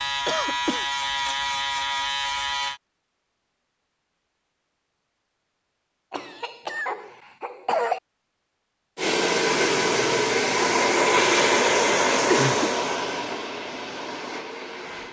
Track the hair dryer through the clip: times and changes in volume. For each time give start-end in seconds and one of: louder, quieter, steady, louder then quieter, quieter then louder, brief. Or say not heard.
8.9-15.0 quieter.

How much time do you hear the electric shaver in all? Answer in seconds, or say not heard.
3 s.